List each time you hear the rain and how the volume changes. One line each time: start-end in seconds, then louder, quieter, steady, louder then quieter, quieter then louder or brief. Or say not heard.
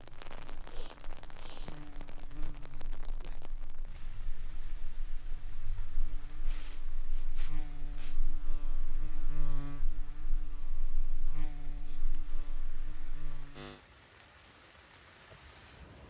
0.0-16.0 quieter then louder.